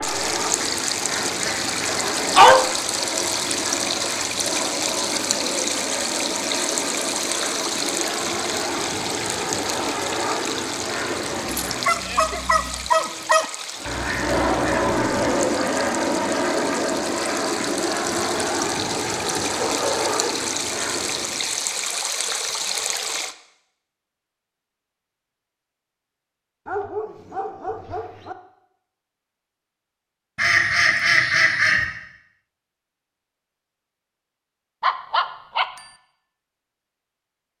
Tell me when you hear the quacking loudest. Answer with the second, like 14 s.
31 s.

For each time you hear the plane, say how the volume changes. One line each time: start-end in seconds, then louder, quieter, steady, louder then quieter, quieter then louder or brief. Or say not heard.
0.0-12.0 steady
13.8-21.6 quieter.